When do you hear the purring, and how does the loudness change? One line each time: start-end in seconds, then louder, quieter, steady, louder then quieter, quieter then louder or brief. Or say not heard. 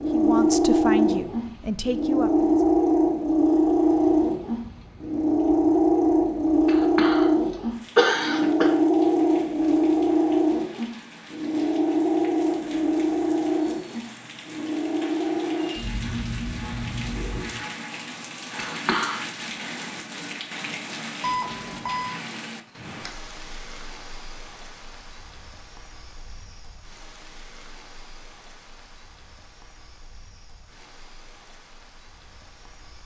0.0-17.6 quieter.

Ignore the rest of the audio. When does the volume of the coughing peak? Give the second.
8 s.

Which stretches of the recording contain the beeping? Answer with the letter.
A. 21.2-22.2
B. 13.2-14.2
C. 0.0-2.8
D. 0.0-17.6
A.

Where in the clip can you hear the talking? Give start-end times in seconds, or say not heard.
0.0-2.8.